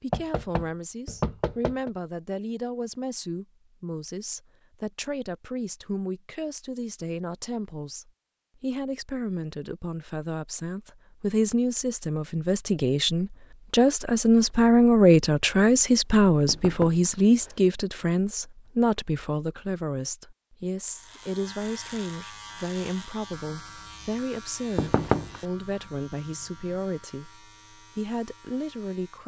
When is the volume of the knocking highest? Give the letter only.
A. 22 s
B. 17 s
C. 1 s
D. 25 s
D.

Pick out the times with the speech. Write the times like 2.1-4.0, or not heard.
0.0-29.2.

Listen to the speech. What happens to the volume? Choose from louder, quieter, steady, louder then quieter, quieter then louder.
louder then quieter.